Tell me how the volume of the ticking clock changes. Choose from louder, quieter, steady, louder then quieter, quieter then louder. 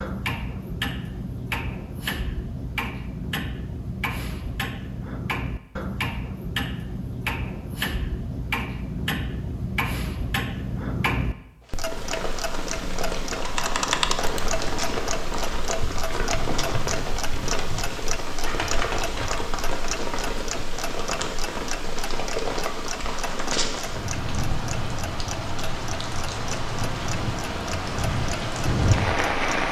quieter.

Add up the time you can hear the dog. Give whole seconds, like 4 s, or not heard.
not heard.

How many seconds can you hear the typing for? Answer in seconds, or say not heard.
6 s.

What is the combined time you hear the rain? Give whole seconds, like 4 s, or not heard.
18 s.